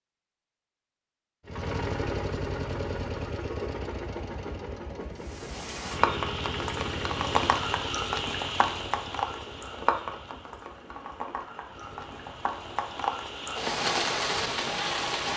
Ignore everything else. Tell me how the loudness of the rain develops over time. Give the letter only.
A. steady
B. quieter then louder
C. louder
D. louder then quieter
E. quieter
B.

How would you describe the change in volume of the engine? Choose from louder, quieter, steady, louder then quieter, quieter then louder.
quieter.